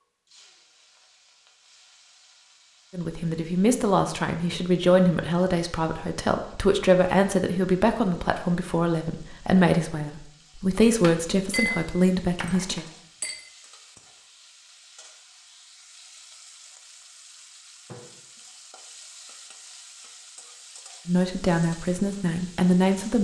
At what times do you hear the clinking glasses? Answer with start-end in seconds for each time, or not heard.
11.0-13.4.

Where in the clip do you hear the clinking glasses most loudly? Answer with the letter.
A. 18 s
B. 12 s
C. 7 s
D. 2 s
B.